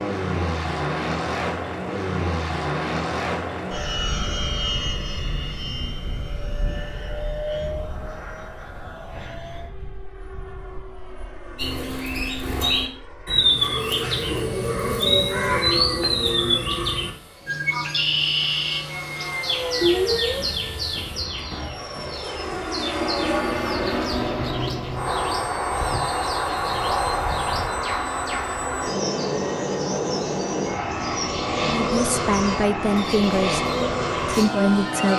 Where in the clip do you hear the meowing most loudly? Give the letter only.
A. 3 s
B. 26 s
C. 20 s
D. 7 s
C.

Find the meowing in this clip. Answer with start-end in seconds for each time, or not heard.
19.8-21.6.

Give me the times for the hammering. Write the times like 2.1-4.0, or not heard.
not heard.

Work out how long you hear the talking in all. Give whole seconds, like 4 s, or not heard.
3 s.